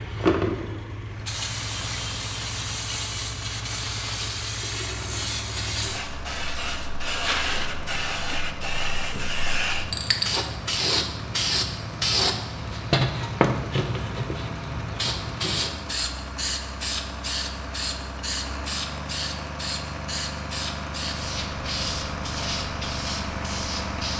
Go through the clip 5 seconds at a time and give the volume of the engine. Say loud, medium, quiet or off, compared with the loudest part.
medium, medium, medium, loud, loud.